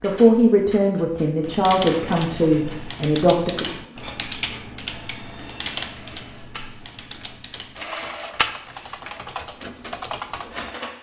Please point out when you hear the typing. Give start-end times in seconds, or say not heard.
1.4-10.8.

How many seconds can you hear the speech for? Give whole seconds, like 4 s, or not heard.
4 s.